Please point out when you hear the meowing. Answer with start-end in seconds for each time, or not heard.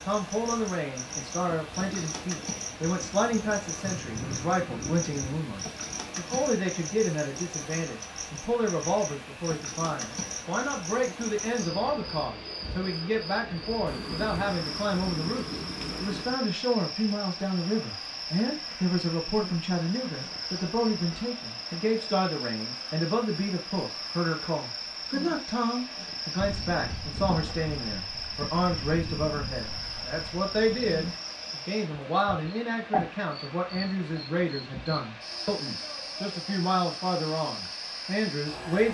not heard.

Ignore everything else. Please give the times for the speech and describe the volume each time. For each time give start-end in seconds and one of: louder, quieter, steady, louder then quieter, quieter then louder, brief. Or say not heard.
0.0-38.8 steady.